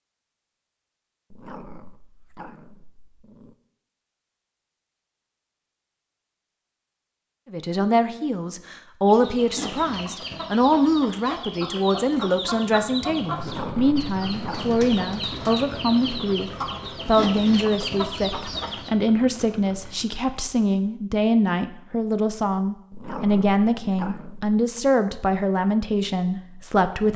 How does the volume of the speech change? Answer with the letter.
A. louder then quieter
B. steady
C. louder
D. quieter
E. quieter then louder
B.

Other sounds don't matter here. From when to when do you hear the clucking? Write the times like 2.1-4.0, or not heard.
9.1-18.9.